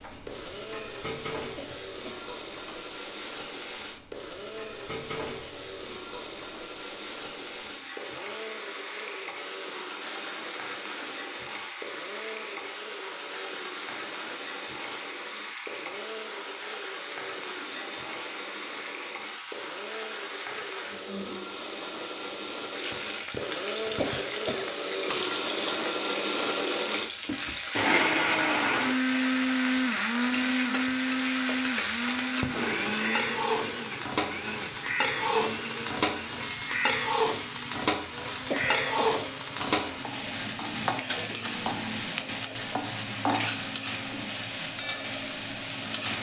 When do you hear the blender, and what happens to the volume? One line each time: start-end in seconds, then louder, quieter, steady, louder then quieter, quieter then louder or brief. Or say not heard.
0.2-46.1 louder then quieter.